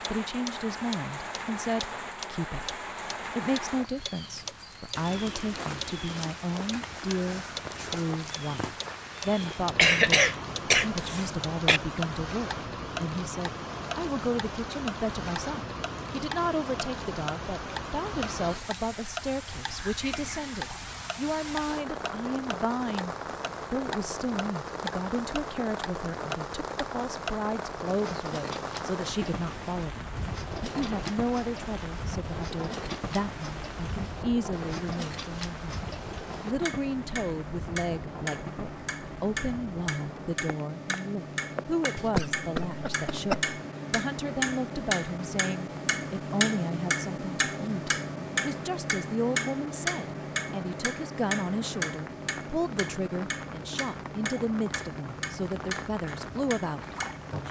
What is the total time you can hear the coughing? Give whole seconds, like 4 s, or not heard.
4 s.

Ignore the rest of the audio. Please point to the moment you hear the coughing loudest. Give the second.
10 s.